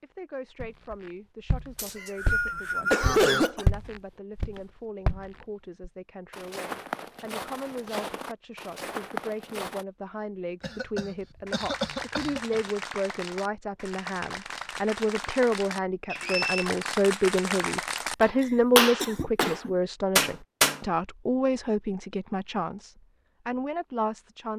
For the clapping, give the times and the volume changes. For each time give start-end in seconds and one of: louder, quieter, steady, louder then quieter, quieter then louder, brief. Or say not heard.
11.4-20.8 louder.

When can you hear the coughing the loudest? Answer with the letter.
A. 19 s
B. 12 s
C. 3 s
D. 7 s
C.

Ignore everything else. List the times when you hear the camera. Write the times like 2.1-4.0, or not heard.
not heard.